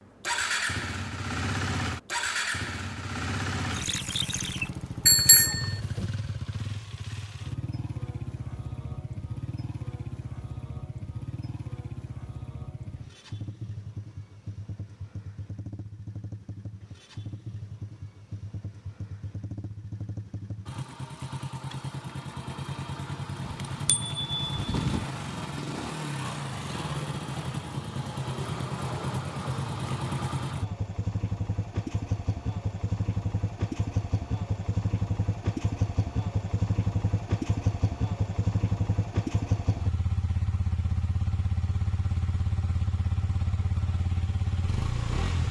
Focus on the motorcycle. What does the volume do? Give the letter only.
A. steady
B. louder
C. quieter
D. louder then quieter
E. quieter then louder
E.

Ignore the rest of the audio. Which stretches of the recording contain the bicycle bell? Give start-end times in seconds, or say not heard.
5.0-6.1, 23.4-25.1.